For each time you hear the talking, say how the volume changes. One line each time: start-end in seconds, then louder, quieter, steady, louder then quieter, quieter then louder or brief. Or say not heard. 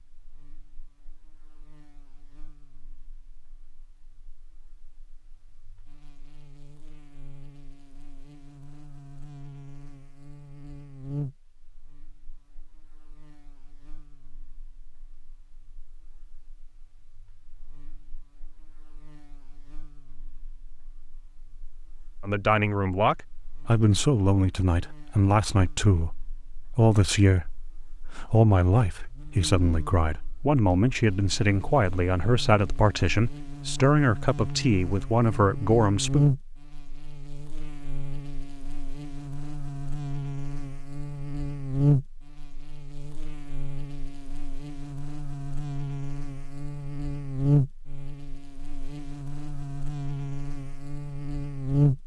22.2-36.2 steady.